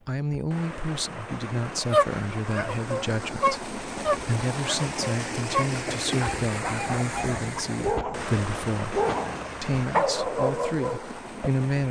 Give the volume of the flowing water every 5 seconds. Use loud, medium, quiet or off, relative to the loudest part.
loud, loud, medium.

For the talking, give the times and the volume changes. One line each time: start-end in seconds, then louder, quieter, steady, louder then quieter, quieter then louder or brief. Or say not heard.
0.1-9.0 steady
9.6-11.8 brief.